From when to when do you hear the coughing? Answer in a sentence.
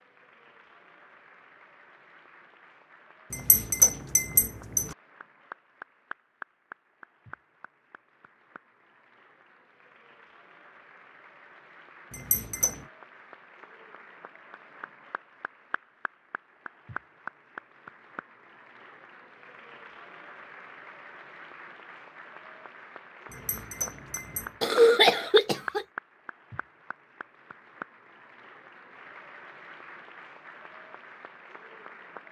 The coughing can be heard from 24.6 to 25.9 s.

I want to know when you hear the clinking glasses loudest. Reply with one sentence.
The volume of the clinking glasses peaks at 4 seconds.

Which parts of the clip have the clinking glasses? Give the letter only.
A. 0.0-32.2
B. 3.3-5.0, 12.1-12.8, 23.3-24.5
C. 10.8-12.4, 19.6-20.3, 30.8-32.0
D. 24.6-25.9
B.